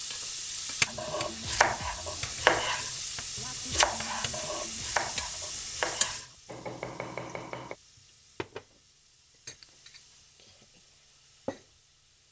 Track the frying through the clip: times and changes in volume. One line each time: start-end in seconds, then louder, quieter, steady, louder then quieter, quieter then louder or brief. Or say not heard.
0.0-12.2 quieter.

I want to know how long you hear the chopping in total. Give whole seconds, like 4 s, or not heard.
7 s.